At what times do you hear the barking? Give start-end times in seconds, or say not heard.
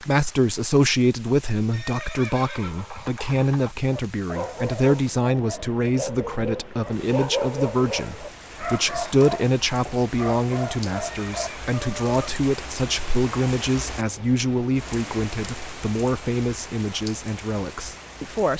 3.9-12.1.